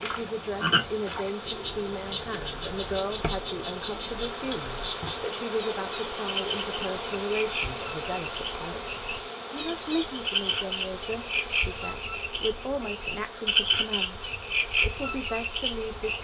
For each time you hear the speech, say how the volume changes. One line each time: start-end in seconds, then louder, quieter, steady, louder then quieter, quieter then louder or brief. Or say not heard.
0.0-16.1 steady.